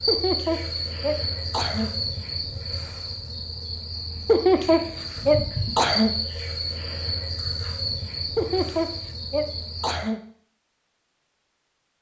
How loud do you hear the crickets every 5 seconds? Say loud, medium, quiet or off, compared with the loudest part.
loud, loud, off.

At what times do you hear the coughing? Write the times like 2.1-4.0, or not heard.
0.1-1.9, 4.2-6.2, 8.3-10.2.